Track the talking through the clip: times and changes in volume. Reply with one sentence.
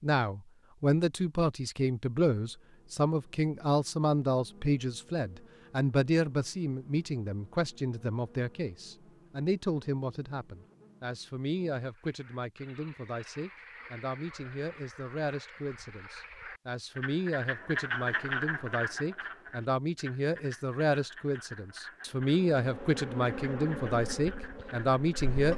The talking can be heard from 0.0 to 25.5 s, getting quieter then louder.